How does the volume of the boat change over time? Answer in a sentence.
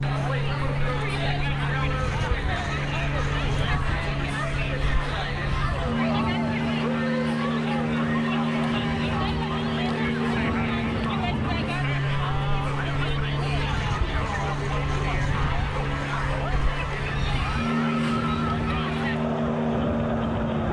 The volume of the boat stays about the same.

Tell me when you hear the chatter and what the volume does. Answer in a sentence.
You can hear the chatter from 0.0 to 20.6 s, at a steady volume.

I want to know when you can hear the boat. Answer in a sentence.
The boat can be heard from 0.0 to 20.6 s.